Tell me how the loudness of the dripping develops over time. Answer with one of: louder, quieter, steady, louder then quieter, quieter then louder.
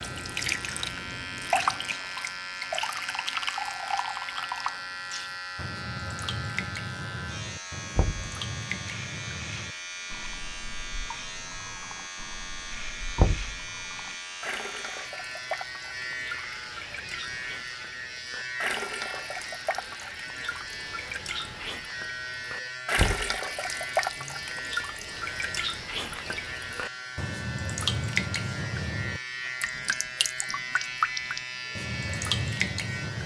quieter then louder.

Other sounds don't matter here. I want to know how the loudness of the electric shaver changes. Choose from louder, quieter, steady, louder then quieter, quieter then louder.
steady.